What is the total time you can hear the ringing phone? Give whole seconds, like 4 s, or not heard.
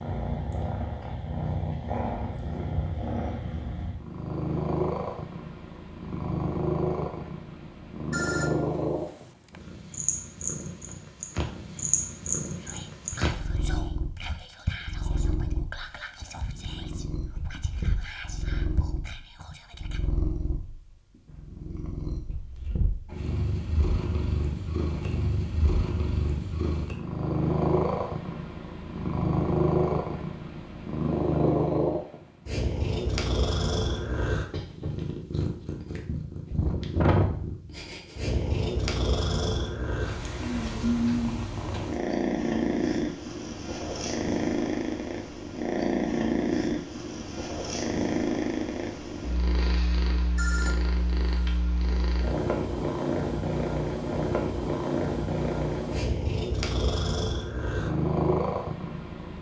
3 s.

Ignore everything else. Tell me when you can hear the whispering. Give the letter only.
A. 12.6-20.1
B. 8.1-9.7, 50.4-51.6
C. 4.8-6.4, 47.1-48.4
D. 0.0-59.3
A.